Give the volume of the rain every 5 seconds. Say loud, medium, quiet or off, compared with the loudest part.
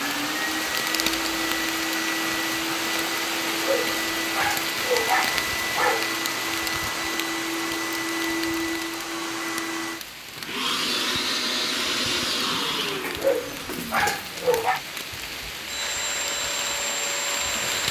loud, loud, medium, loud.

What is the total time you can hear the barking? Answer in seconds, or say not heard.
4 s.